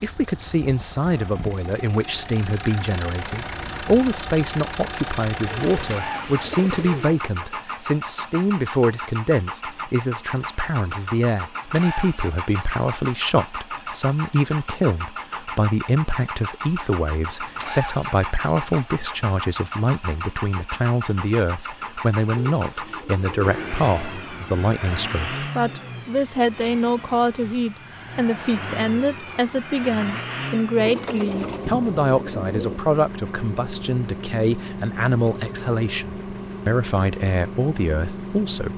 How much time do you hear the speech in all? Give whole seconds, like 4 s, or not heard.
39 s.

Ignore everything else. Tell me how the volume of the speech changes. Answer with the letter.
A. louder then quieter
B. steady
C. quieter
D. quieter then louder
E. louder
B.